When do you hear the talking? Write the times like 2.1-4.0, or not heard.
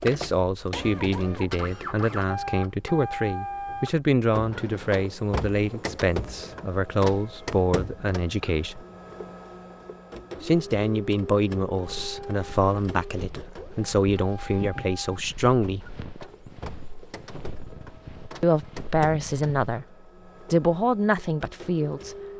0.1-8.8, 10.4-15.9, 18.4-19.9, 20.5-22.1.